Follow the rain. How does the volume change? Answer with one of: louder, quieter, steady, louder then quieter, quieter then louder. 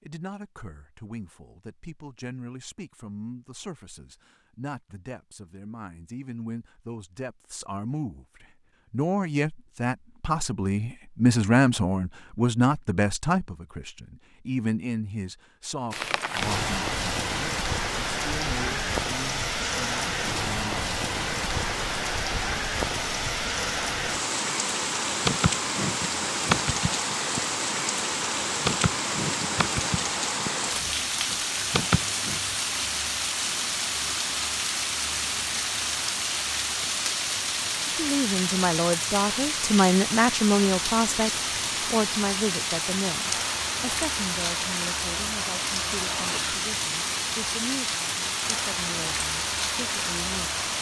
steady.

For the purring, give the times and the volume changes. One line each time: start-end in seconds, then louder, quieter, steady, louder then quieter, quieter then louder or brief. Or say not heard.
not heard.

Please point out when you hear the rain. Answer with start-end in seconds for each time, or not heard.
15.9-50.7.